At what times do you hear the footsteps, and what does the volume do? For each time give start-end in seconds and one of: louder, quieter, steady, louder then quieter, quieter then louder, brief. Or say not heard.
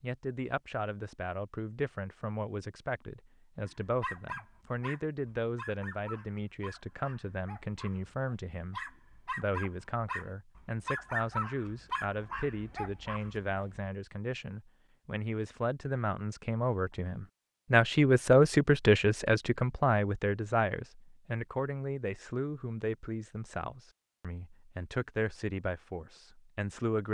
not heard.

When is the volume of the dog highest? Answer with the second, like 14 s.
11 s.